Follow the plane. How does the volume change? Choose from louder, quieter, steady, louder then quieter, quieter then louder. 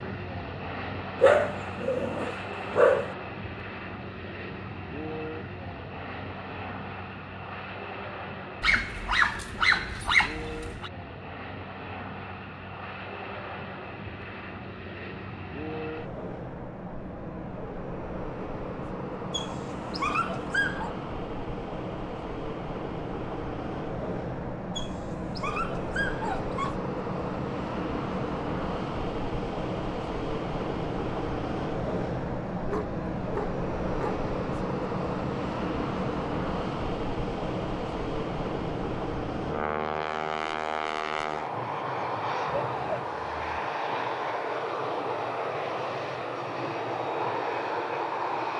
louder.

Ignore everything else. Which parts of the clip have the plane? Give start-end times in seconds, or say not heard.
0.0-48.5.